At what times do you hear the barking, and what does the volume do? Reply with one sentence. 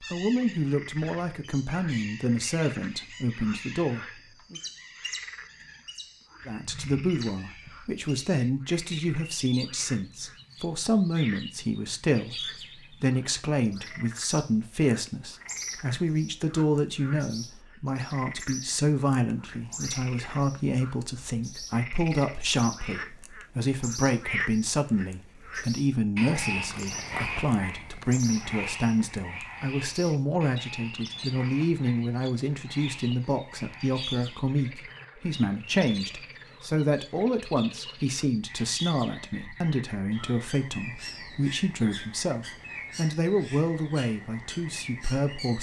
You can't hear the barking here.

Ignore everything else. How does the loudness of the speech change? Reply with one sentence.
The volume of the speech stays about the same.